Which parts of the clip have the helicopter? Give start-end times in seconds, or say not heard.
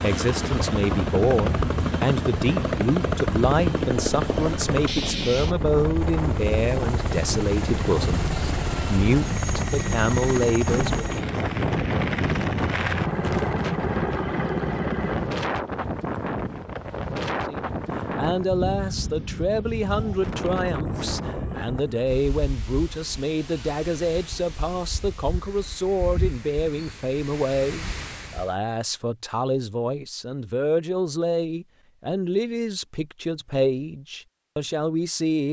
0.0-15.4.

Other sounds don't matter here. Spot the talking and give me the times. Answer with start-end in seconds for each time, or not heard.
0.0-11.1, 17.4-35.4.